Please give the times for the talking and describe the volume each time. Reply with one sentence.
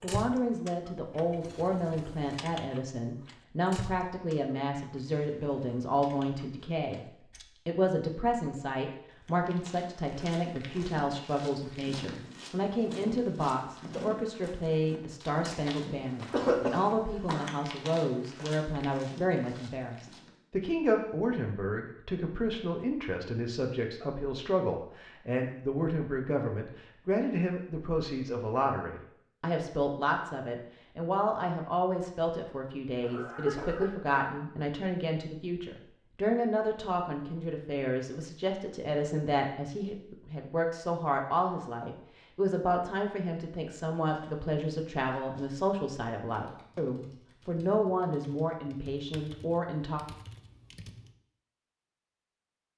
You can hear the talking from 0.0 to 50.0 s, at a steady volume.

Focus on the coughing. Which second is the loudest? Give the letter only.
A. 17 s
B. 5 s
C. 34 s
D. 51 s
A.